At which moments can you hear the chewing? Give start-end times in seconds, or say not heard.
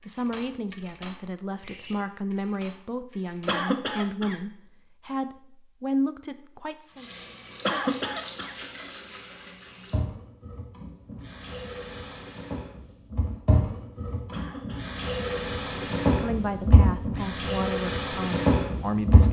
not heard.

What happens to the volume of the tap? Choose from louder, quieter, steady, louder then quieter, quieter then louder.
louder.